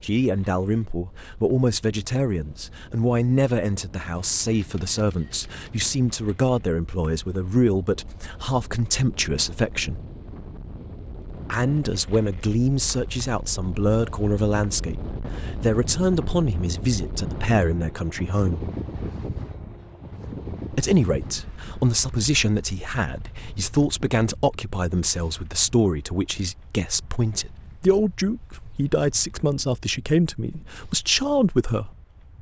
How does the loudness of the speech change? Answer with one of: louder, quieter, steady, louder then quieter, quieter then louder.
steady.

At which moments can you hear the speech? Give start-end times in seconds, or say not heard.
0.0-10.0, 11.5-18.6, 20.7-31.9.